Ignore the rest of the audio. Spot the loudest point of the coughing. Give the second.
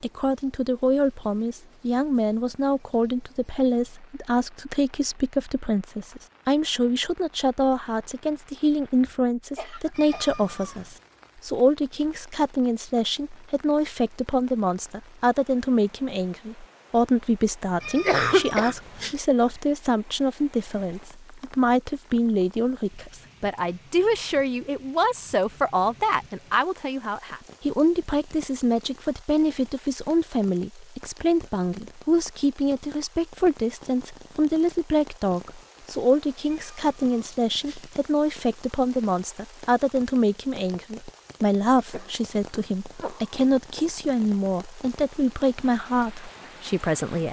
18 s.